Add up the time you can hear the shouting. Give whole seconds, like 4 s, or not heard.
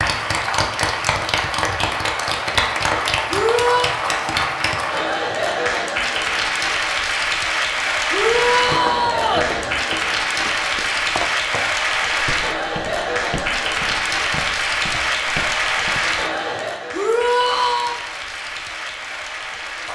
3 s.